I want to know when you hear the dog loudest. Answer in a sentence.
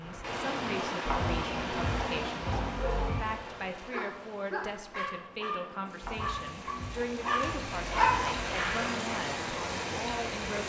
The loudest moment of the dog is at 8 seconds.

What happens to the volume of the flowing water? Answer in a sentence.
The volume of the flowing water goes down, then up.